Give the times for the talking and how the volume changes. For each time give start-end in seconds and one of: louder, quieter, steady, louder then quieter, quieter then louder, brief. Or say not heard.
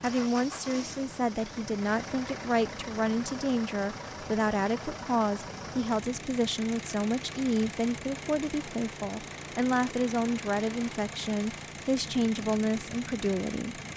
0.0-13.8 steady.